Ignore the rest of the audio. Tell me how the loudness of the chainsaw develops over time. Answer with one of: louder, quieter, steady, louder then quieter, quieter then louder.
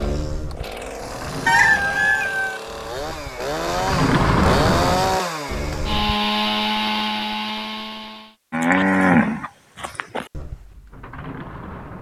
louder.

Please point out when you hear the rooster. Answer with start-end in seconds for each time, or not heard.
1.4-2.6.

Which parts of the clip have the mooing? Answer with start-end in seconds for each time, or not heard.
0.0-6.2, 8.5-11.9.